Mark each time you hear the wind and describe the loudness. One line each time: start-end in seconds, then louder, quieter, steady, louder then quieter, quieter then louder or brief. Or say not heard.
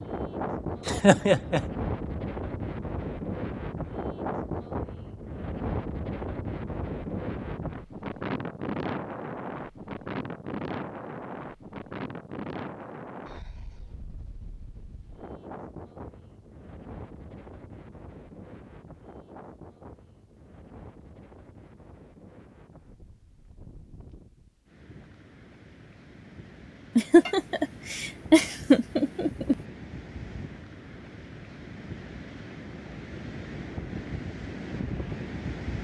0.0-35.8 quieter then louder.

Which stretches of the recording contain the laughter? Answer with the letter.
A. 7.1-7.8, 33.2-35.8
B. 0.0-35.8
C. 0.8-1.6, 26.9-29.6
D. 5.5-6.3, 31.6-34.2
C.